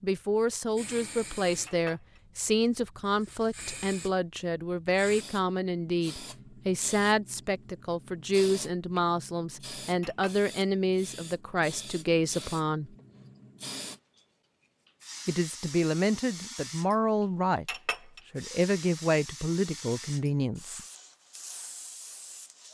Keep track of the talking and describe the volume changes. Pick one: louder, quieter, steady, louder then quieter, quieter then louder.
steady.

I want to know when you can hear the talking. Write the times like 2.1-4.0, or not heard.
0.0-12.9, 15.2-20.8.